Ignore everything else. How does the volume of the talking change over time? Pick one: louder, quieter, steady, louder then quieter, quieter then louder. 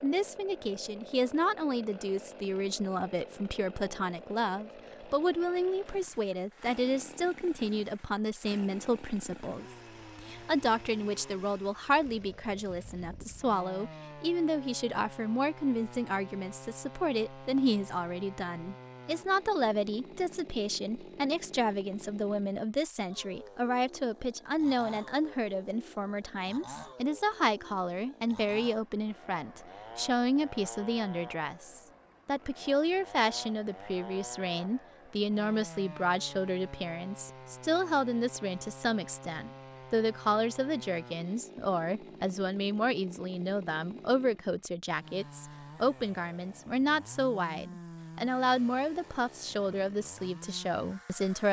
steady.